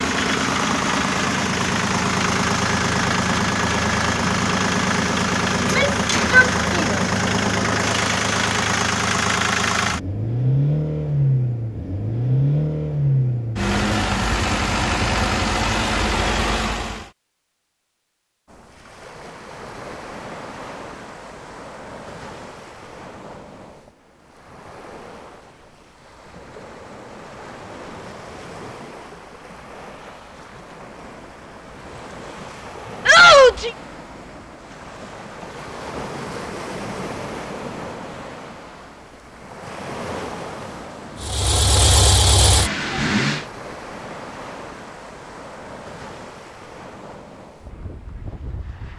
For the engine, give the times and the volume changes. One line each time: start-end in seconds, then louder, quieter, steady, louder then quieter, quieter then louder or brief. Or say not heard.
0.0-17.1 steady
41.2-43.5 brief.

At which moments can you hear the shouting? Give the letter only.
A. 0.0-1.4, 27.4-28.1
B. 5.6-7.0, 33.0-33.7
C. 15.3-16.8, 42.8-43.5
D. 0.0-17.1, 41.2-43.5
B.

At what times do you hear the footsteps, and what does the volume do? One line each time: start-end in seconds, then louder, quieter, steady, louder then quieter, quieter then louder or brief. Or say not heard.
not heard.